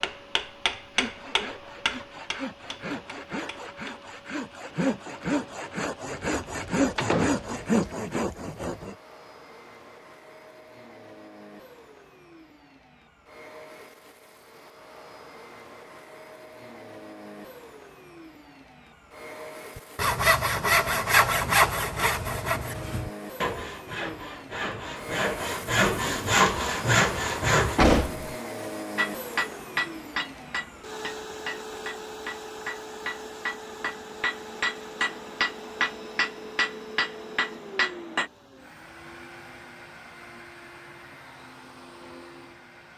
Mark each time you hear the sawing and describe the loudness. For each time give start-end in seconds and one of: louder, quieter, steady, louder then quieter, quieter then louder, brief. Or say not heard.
0.9-8.9 louder
19.8-27.8 quieter then louder.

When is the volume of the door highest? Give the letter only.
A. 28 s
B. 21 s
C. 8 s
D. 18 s
A.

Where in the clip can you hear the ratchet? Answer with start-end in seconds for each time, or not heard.
not heard.